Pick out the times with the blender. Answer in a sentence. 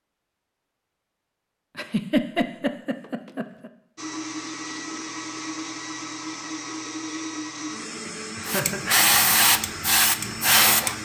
The blender can be heard from 4.0 to 11.0 s.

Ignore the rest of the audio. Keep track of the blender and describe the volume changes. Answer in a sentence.
The volume of the blender stays about the same.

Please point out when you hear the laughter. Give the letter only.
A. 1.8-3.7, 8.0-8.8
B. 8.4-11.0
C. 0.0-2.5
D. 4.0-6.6
A.